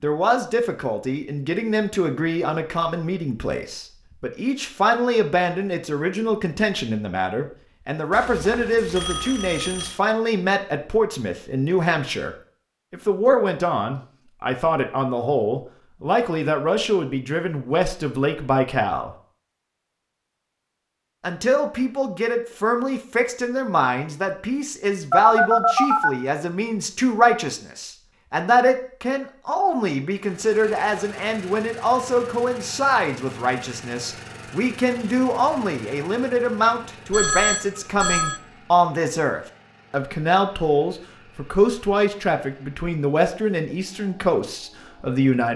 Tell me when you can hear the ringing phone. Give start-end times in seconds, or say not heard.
8.1-9.9, 25.1-26.1, 37.1-38.4.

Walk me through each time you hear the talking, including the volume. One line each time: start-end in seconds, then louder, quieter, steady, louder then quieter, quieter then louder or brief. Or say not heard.
0.0-12.3 steady
12.9-19.1 steady
21.2-45.5 steady.